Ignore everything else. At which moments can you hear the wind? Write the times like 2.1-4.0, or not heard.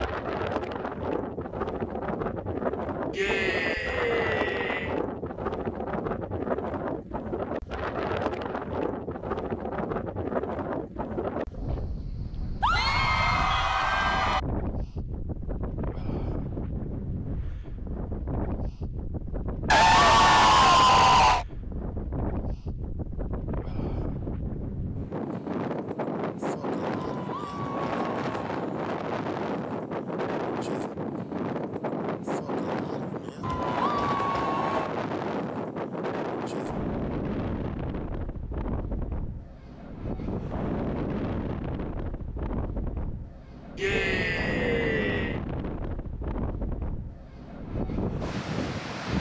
0.0-49.1.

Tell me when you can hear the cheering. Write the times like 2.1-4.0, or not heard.
3.1-5.0, 12.6-14.4, 19.7-21.4, 26.9-28.7, 33.4-34.9, 43.8-45.4.